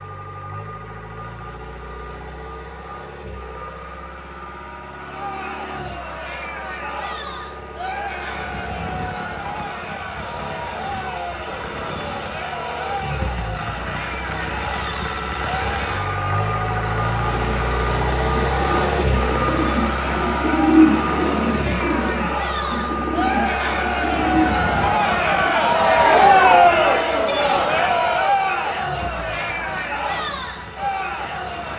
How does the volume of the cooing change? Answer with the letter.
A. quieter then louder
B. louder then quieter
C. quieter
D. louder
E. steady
B.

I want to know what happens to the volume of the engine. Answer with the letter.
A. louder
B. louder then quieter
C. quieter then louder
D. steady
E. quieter
B.